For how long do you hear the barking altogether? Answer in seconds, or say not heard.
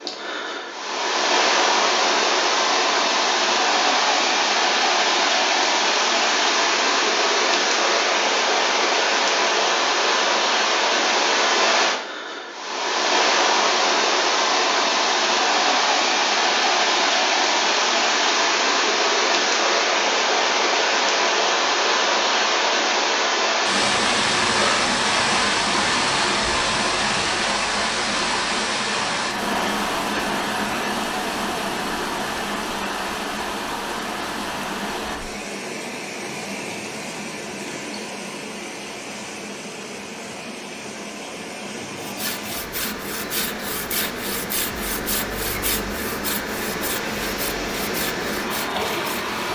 not heard.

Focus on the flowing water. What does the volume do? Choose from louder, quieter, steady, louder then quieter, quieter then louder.
quieter.